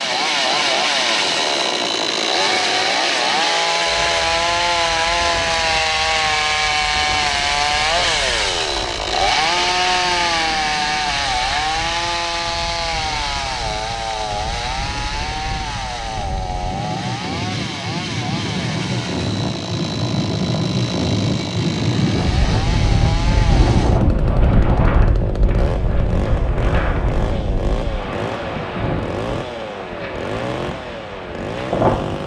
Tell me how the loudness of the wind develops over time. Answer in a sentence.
The loudness of the wind goes up, then down.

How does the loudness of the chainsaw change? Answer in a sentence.
The volume of the chainsaw goes down.